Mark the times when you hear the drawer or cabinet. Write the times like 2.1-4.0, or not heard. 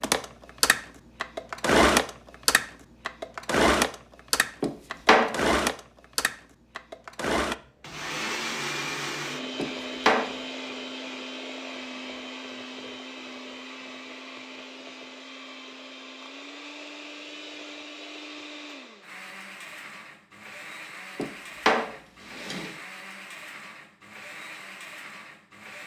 4.6-5.4, 9.6-10.3, 21.1-22.7.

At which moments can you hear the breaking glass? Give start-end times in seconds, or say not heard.
not heard.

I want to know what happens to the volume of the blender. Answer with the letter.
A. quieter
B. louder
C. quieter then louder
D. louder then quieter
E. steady
A.